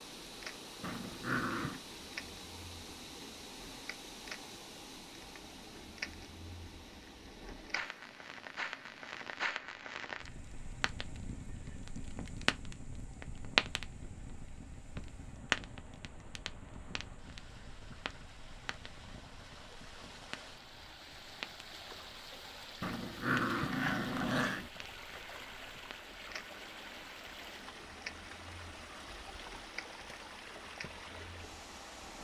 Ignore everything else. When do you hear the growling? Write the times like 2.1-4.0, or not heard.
0.8-1.8, 22.8-24.7.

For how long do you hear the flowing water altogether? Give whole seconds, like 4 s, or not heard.
32 s.